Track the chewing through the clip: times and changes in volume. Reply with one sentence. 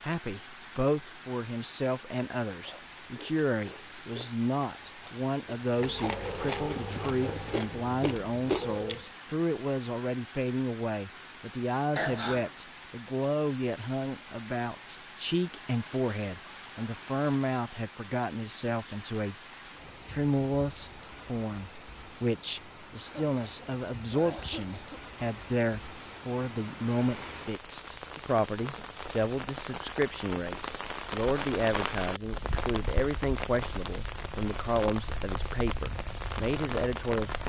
The chewing can be heard from 2.5 to 9.1 s, getting louder.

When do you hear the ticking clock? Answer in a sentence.
You can't hear the ticking clock here.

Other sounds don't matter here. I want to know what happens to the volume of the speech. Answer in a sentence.
The volume of the speech stays about the same.